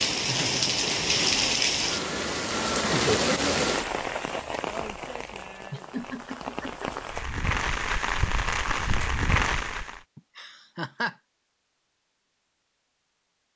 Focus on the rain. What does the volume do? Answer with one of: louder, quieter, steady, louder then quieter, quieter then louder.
quieter then louder.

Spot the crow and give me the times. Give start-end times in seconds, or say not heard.
not heard.